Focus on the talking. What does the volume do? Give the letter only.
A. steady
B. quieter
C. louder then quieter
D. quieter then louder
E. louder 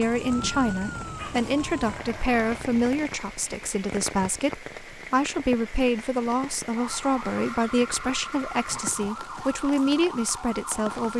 A.